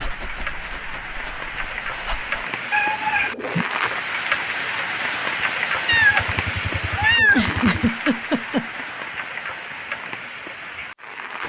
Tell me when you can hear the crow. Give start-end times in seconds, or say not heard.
not heard.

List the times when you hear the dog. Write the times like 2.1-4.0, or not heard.
0.0-2.5.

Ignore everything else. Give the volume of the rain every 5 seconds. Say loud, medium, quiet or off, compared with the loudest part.
loud, loud, medium.